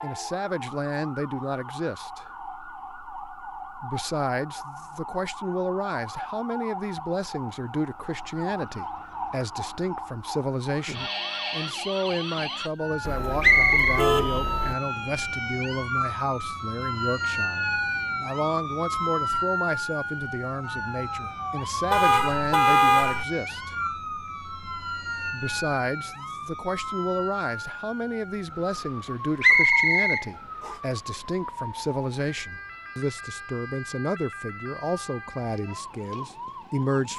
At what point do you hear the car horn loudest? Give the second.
23 s.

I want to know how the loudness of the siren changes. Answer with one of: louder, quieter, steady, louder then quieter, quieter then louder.
louder then quieter.